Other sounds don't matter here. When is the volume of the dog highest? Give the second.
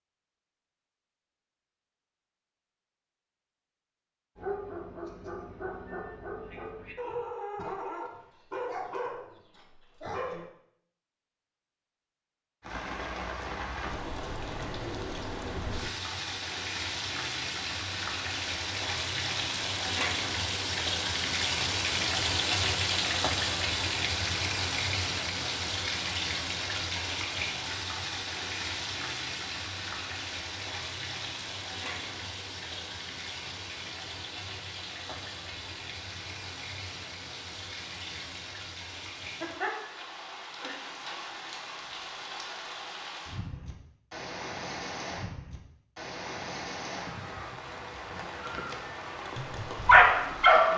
50 s.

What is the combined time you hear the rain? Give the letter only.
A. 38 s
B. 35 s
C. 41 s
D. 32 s
A.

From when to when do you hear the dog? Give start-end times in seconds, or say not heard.
4.3-10.4, 49.4-50.7.